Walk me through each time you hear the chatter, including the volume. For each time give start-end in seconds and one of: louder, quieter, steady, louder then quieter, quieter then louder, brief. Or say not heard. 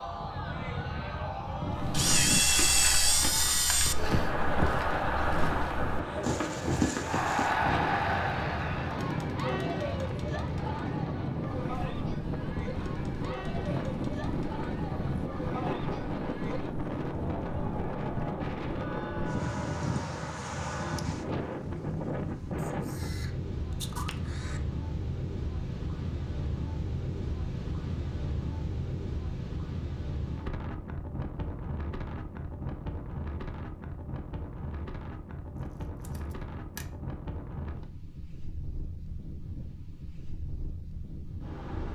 0.0-21.1 louder then quieter.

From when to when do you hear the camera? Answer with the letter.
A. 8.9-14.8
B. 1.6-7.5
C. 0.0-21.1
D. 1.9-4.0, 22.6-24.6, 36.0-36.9
D.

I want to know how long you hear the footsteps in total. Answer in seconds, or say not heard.
6 s.